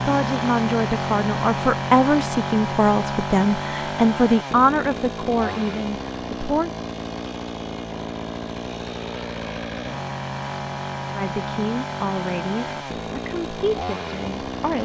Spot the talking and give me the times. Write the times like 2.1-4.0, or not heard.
0.0-6.7, 11.2-14.7.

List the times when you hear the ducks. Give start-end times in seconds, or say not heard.
not heard.